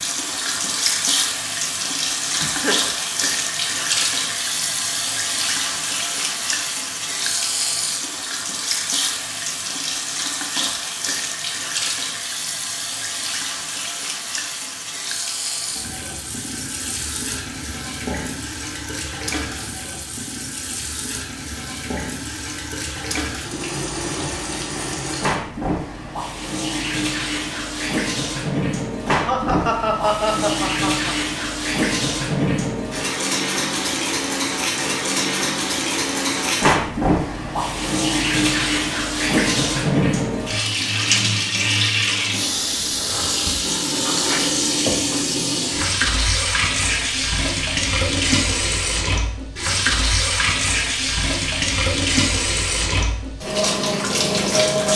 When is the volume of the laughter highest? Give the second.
30 s.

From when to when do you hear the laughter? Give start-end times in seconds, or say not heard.
2.4-2.9, 29.1-31.1.